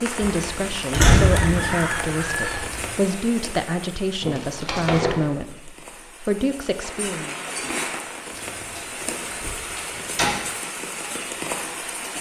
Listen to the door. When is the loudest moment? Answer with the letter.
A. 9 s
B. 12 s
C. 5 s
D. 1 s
D.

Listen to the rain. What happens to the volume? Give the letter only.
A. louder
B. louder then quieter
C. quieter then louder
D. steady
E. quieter
C.